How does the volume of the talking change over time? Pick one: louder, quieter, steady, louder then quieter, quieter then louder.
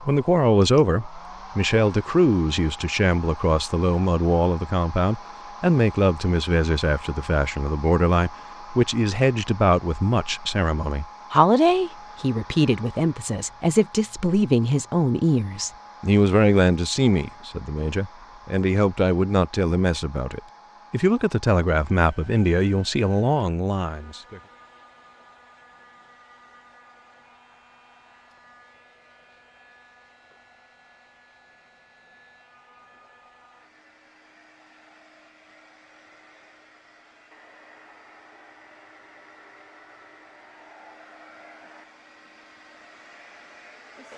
steady.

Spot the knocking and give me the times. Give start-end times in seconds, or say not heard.
not heard.